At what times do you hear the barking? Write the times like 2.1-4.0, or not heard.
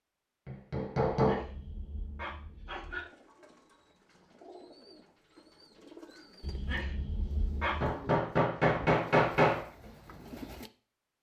1.1-3.0, 6.4-8.0.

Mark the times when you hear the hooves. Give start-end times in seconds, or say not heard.
not heard.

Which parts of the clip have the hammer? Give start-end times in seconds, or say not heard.
0.5-1.4, 7.8-9.7.